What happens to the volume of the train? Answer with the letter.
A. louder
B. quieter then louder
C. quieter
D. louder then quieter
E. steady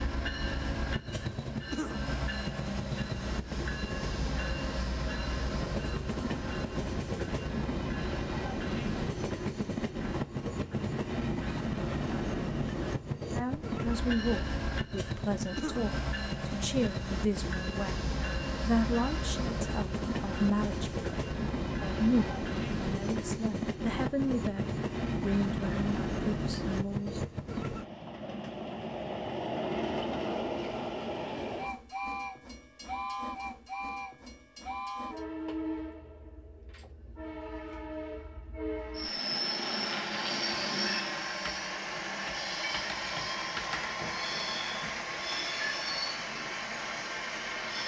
E.